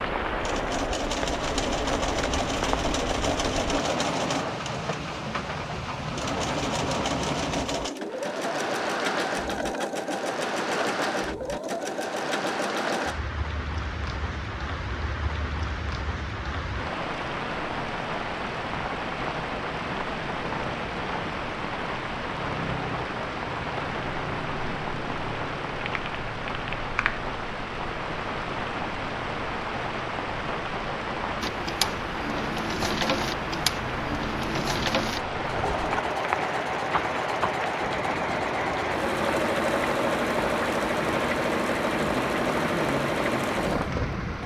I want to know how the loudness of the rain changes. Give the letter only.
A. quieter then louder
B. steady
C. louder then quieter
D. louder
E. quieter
B.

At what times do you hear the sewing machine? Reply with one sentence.
You can hear the sewing machine from 0.2 to 13.2 s and from 31.4 to 44.4 s.